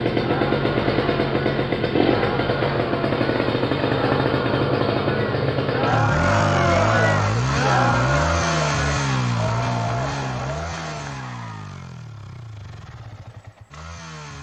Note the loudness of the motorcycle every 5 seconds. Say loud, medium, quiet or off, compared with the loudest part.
loud, loud, quiet.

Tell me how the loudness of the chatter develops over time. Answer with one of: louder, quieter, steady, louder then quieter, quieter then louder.
louder then quieter.